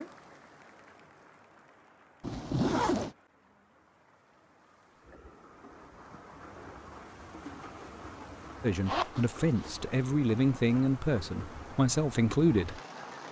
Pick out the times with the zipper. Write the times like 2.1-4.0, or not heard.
2.2-3.1, 8.8-9.2.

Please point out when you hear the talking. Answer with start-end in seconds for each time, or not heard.
8.6-12.8.